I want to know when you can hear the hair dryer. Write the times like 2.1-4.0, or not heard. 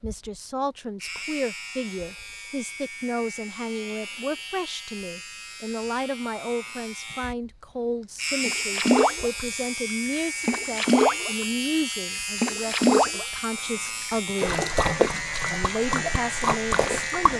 not heard.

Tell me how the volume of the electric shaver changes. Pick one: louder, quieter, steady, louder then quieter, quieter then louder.
louder.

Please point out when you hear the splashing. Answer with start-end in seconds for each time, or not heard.
8.4-9.5, 10.4-11.6, 12.4-13.4, 14.1-17.3.